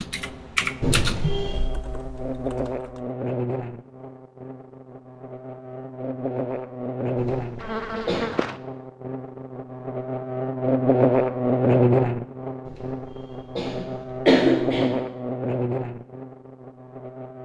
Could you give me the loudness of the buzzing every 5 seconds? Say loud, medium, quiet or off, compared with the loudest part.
medium, medium, loud, medium.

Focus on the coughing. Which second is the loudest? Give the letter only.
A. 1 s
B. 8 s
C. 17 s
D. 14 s
D.